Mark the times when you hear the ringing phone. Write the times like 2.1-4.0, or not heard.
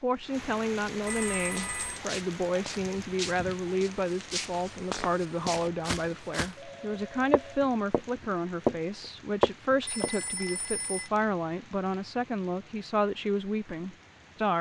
1.1-2.0, 5.6-7.6, 9.8-11.1.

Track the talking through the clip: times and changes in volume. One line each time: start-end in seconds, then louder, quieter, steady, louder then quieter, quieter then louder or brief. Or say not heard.
0.0-14.5 steady.